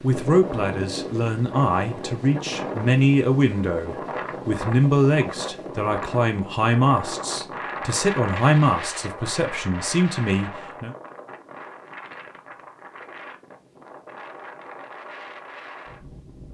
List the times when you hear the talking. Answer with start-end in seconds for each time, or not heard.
0.0-10.9.